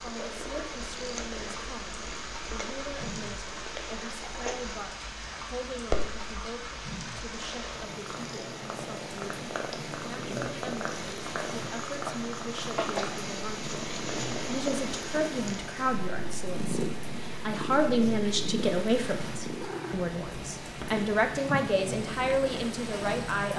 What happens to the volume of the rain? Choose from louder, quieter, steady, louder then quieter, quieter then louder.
steady.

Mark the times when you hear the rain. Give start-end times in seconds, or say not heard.
0.0-23.5.